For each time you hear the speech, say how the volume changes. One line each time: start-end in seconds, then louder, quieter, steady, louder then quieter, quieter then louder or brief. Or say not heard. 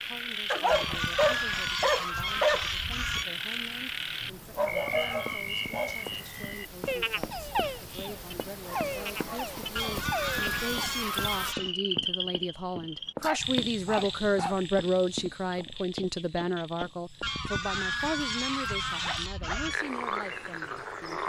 0.0-21.2 louder then quieter.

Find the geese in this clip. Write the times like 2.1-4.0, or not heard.
0.7-3.2, 9.8-11.8, 17.2-19.8.